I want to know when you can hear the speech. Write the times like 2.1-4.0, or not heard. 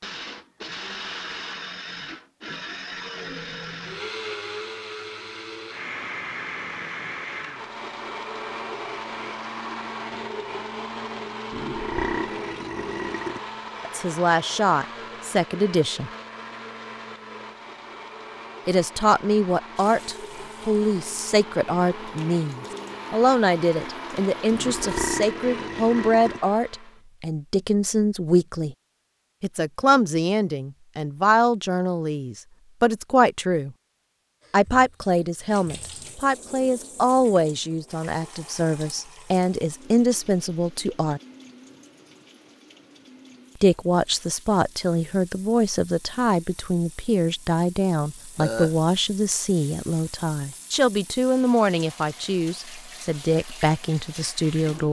13.8-16.1, 18.6-28.8, 29.4-33.7, 34.5-41.2, 43.6-54.8.